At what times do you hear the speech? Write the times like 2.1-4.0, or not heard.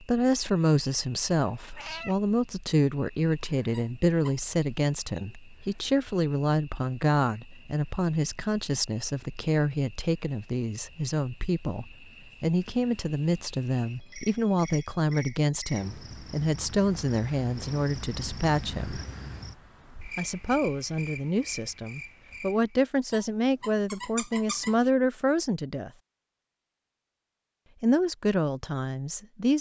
0.0-19.0, 20.1-25.9, 27.8-29.5.